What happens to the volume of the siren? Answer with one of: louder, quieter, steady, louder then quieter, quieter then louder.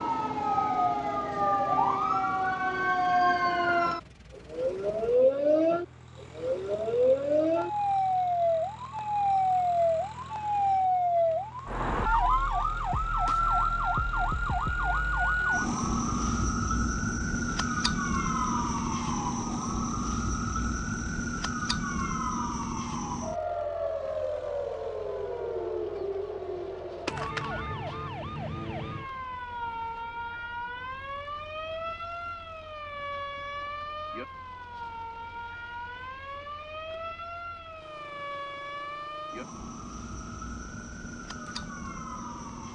quieter.